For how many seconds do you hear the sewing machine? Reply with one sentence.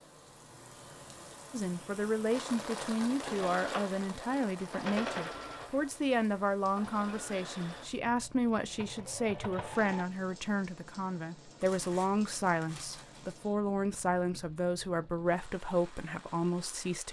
The sewing machine can be heard for 7 seconds in total.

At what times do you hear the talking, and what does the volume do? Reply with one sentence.
You can hear the talking from 1.5 to 17.0 s, at a steady volume.